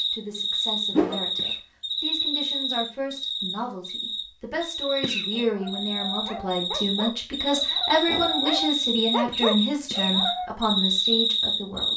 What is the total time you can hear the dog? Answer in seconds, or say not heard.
5 s.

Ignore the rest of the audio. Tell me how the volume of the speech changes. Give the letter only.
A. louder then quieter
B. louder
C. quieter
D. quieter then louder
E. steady
B.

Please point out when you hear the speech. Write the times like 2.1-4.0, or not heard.
0.0-11.9.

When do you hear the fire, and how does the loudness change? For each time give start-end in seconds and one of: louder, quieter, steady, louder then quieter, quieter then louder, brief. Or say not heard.
not heard.